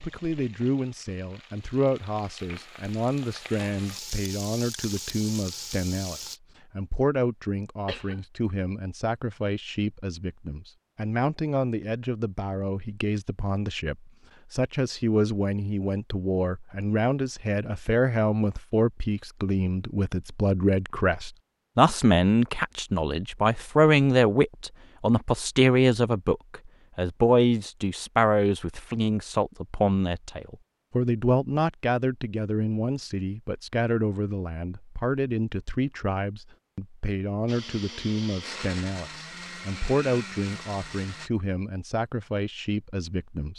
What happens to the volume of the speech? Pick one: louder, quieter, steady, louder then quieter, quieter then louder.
louder then quieter.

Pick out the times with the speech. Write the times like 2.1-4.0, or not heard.
0.0-43.5.